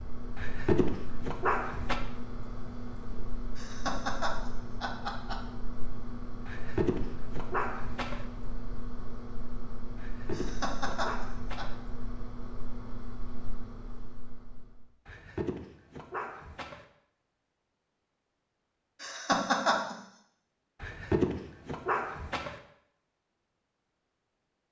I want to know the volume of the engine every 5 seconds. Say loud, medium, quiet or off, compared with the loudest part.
loud, loud, loud, off, off.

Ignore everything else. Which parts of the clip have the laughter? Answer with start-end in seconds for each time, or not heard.
3.5-5.4, 10.3-11.7, 19.0-19.9.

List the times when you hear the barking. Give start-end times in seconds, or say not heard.
0.3-2.0, 6.5-8.2, 9.9-11.8, 15.1-16.9, 20.8-22.6.